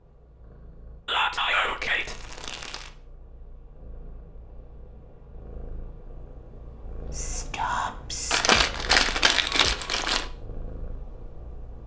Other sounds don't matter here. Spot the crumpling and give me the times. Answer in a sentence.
The crumpling can be heard from 1.4 to 2.9 s and from 8.3 to 10.3 s.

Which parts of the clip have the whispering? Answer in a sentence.
The whispering can be heard from 1.1 to 2.1 s and from 7.1 to 8.7 s.